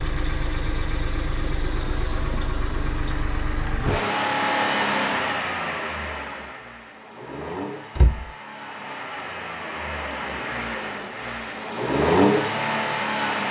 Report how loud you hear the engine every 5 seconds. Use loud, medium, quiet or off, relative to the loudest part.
loud, medium, loud.